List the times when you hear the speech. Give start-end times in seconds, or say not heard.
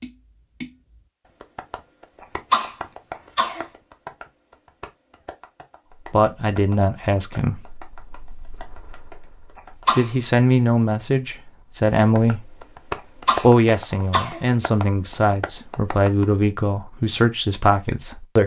6.1-12.7, 13.4-18.4.